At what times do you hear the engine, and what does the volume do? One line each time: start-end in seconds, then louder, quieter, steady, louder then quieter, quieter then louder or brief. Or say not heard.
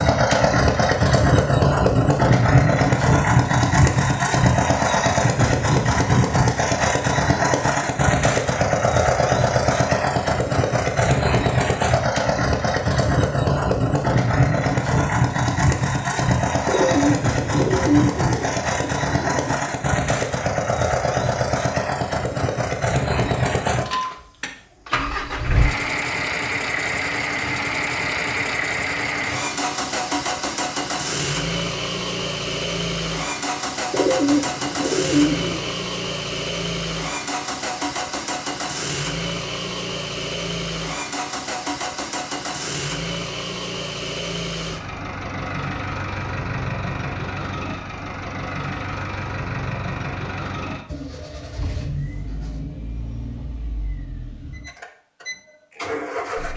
0.0-56.5 quieter.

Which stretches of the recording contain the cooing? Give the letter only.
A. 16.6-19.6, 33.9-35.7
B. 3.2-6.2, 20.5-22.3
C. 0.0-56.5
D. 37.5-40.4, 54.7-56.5
A.